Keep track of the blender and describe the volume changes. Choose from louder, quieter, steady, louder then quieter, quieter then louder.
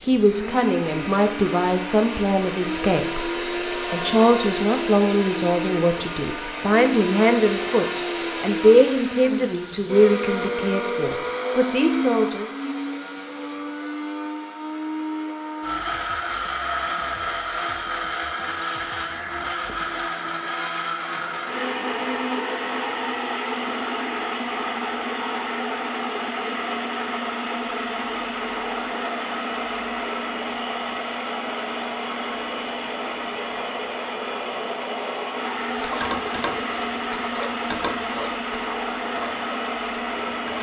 steady.